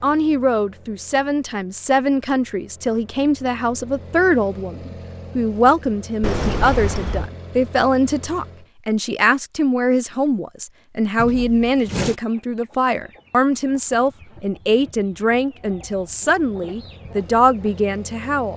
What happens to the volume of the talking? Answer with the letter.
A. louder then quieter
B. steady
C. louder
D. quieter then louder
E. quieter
B.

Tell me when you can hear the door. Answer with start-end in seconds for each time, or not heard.
6.2-7.3, 11.2-12.2.